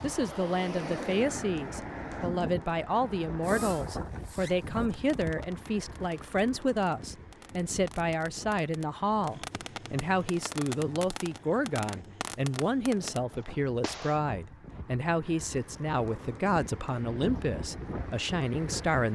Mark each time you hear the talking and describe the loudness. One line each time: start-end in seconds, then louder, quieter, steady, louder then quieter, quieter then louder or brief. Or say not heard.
0.0-19.1 steady.